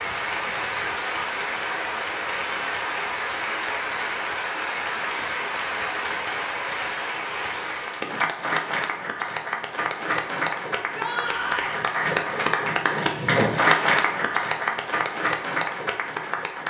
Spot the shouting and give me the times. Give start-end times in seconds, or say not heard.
10.9-11.8.